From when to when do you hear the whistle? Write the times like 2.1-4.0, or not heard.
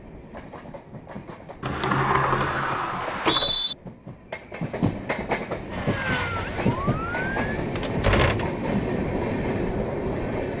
3.0-3.8.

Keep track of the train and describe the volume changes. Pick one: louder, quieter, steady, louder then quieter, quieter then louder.
louder.